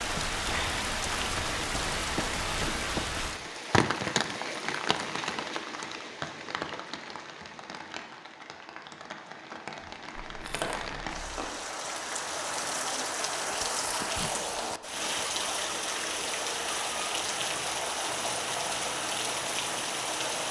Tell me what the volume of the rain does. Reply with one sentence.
The volume of the rain goes down, then up.